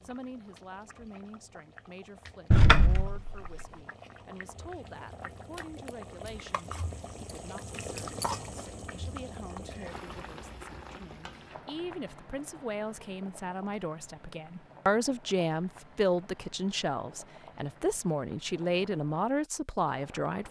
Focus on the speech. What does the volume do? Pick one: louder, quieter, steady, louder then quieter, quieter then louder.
louder.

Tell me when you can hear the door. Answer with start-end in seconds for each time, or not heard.
2.5-3.6.